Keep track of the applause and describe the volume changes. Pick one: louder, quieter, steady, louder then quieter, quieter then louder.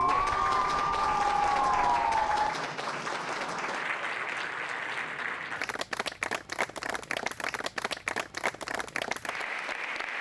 steady.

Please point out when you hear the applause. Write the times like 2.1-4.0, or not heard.
0.0-10.1.